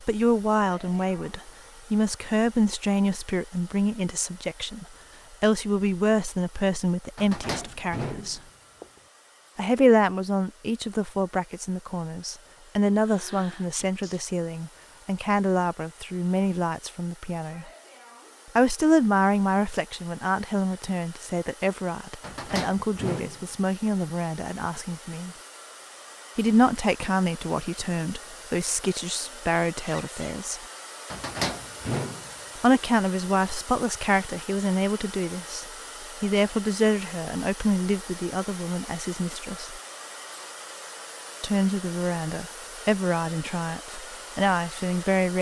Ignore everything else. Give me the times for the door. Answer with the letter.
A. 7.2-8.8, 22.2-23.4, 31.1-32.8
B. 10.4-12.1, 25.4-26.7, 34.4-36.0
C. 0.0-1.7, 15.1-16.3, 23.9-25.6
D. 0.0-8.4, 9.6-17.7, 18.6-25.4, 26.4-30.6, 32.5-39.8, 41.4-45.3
A.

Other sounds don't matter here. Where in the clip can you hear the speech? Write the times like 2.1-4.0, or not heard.
0.0-8.4, 9.6-17.7, 18.6-25.4, 26.4-30.6, 32.5-39.8, 41.4-45.3.